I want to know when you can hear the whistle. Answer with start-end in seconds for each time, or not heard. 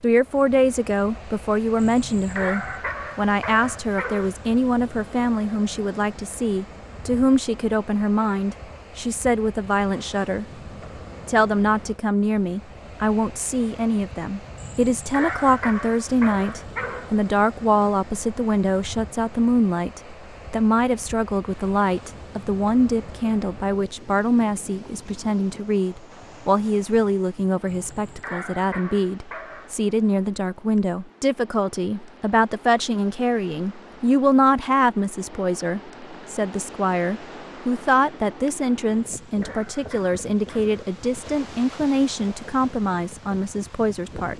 not heard.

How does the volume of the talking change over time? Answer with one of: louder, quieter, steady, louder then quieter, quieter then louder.
steady.